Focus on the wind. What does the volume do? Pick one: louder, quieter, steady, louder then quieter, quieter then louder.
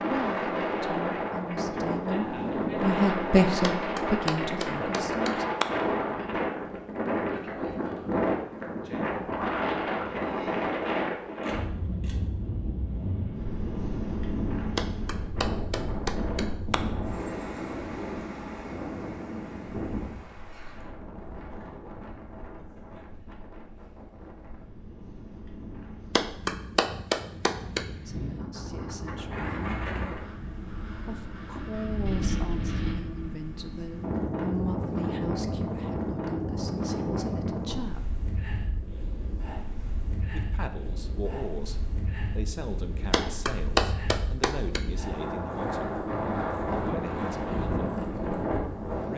quieter then louder.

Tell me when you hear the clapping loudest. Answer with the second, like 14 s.
44 s.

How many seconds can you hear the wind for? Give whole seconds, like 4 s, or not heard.
49 s.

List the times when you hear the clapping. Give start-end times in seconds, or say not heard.
3.6-5.7, 14.8-16.8, 26.1-27.9, 43.1-44.8.